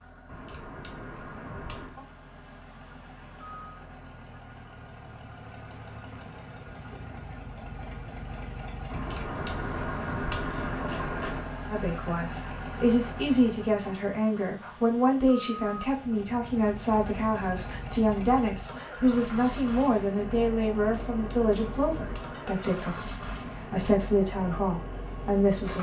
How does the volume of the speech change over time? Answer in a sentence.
The loudness of the speech stays about the same.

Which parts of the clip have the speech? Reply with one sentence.
You can hear the speech from 11.7 to 25.7 s.